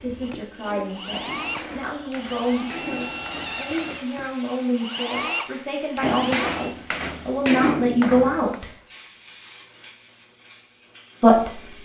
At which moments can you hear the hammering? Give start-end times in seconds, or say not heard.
1.2-4.0, 6.0-8.6.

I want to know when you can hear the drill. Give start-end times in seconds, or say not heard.
0.0-6.8.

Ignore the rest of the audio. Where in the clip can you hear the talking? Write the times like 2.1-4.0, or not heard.
0.0-8.7, 11.2-11.6.